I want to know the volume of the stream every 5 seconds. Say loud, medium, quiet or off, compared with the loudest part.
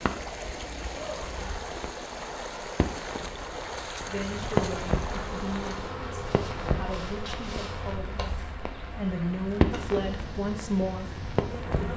loud, medium, medium.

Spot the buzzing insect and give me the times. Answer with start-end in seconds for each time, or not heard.
5.0-11.9.